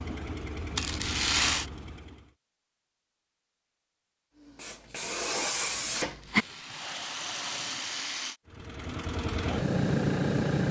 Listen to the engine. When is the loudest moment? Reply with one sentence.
The volume of the engine peaks at 10 seconds.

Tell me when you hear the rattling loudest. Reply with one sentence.
The loudest moment of the rattling is at 1 second.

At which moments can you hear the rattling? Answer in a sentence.
The rattling can be heard from 0.8 to 1.6 s and from 6.0 to 8.3 s.